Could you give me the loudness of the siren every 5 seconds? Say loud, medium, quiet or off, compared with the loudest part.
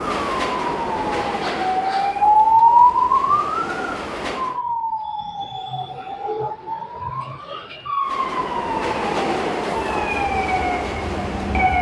loud, medium, medium.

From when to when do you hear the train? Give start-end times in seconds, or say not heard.
0.0-4.6, 8.0-11.7.